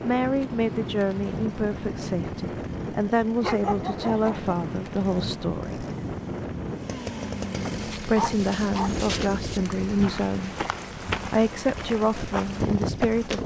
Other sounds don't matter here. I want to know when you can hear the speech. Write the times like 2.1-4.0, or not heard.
0.0-5.8, 7.9-10.5, 11.3-13.4.